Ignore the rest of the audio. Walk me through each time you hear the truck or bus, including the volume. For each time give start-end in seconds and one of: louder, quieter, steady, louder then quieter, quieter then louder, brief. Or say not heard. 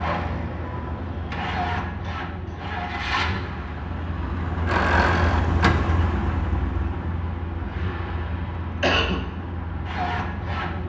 0.0-10.8 louder then quieter.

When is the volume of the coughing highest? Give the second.
9 s.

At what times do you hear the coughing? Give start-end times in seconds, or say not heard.
2.0-2.7, 8.8-9.3.